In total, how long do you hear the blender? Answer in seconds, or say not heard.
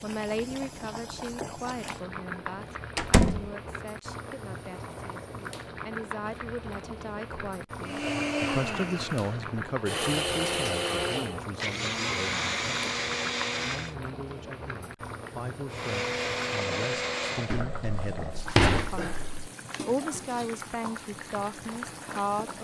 8 s.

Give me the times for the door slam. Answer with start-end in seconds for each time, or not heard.
3.0-3.5, 17.5-19.5.